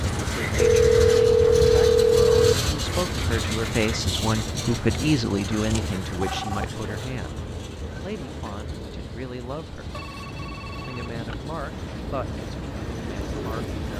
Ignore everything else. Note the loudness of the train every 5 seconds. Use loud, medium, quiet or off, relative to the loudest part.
loud, medium, medium.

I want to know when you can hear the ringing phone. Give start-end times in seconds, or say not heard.
0.6-2.5, 5.7-6.7, 9.9-11.3.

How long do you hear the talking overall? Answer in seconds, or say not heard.
12 s.